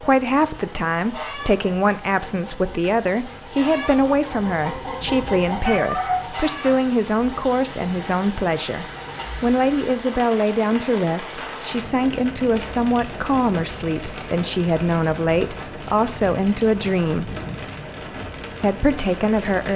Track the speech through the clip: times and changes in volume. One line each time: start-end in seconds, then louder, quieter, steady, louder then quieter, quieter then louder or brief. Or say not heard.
0.0-17.3 steady
18.6-19.7 brief.